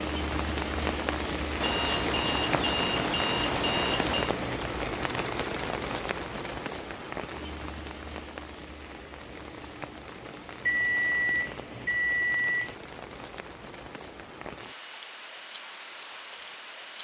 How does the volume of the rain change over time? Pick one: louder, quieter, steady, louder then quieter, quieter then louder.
quieter.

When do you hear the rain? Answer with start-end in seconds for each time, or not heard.
0.0-17.0.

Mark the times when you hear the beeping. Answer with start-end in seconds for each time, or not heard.
1.6-4.3, 10.6-12.8.